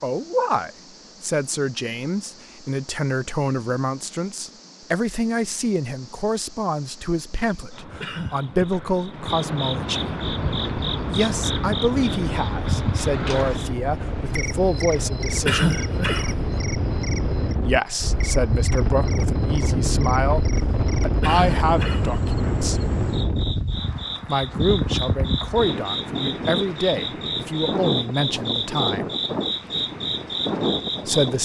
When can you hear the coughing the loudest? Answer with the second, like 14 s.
16 s.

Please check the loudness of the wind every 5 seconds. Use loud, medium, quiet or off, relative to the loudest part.
off, off, medium, loud, loud, loud, loud.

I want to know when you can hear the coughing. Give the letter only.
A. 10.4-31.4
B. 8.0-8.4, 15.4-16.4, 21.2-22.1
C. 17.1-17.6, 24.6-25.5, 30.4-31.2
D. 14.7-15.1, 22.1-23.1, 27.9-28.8
B.